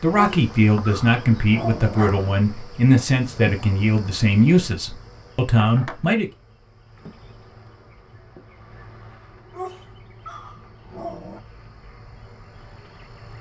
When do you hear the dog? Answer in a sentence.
The dog can be heard from 0.1 to 2.4 s and from 9.5 to 11.4 s.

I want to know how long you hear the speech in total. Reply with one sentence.
You can hear the speech for 6 seconds altogether.